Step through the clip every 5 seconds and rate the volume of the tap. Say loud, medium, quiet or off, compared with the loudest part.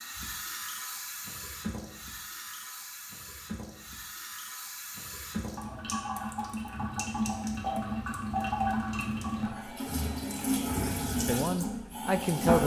medium, loud, loud.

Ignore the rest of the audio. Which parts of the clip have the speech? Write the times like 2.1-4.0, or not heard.
10.8-12.6.